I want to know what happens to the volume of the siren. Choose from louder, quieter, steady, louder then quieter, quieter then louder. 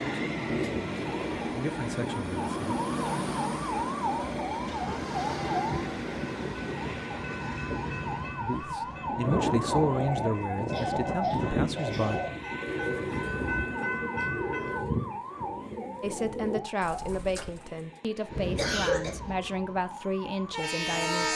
quieter.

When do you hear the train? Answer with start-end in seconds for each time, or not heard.
0.0-14.8, 18.2-21.3.